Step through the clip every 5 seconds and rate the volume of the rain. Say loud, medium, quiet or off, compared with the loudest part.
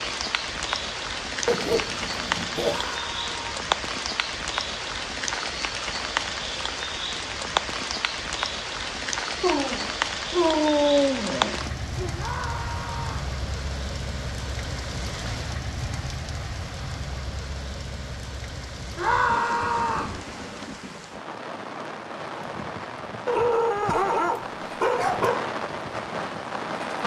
loud, loud, loud, medium, medium, loud.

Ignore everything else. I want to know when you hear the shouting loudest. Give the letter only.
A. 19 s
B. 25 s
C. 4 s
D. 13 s
A.